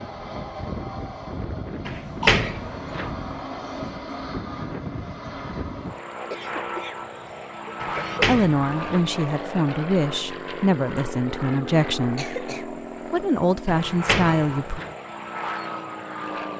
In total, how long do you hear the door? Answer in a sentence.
The door can be heard for 4 seconds in total.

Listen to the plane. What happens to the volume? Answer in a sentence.
The loudness of the plane stays about the same.